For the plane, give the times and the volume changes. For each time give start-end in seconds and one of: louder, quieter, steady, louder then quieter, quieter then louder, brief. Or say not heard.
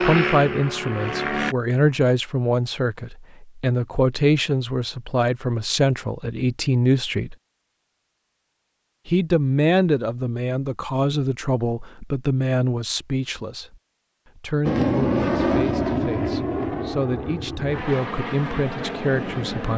0.0-1.6 brief
14.7-19.7 quieter.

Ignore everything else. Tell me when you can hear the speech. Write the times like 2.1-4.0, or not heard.
0.0-7.3, 9.1-13.8, 14.3-19.7.